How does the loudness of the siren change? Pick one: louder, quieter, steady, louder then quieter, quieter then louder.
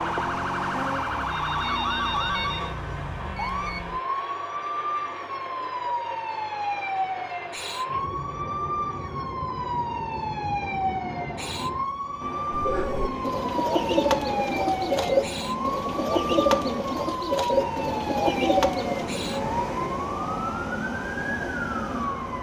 steady.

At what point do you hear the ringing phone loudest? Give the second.
2 s.